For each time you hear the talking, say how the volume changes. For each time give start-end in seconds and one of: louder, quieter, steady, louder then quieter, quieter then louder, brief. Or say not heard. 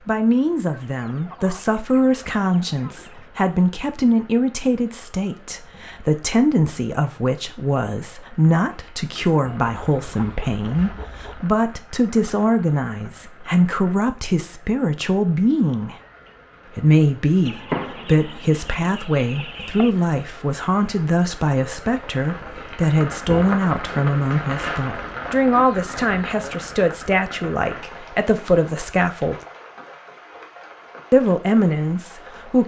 0.1-15.9 steady
16.7-29.4 steady
31.1-32.6 brief.